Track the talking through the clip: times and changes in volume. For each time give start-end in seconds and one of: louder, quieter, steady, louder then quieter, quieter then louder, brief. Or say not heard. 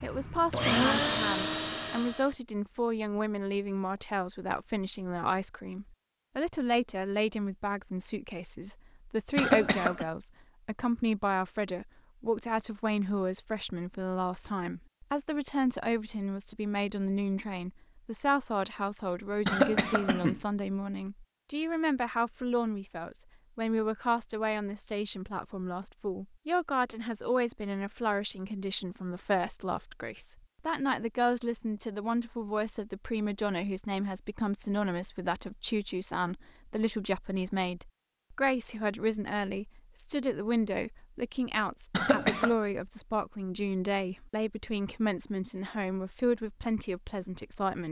0.0-47.8 steady.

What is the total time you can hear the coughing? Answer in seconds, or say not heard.
2 s.